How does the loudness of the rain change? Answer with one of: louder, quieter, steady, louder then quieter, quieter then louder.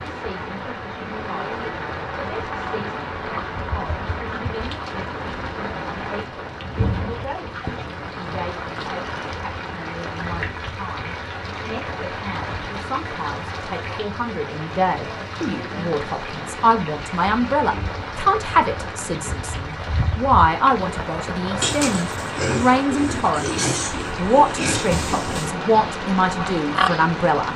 steady.